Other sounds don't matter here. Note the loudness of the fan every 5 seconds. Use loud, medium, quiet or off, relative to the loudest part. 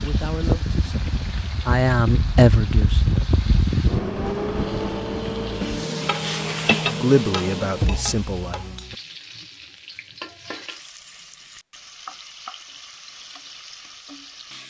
loud, medium, off.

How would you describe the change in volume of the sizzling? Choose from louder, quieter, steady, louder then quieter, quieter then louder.
louder then quieter.